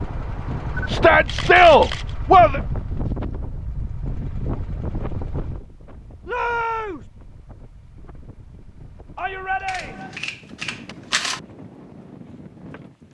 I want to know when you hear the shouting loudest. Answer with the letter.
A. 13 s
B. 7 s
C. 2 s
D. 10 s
C.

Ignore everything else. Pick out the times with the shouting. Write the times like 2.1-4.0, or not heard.
0.8-2.6, 6.2-7.0, 9.2-10.2.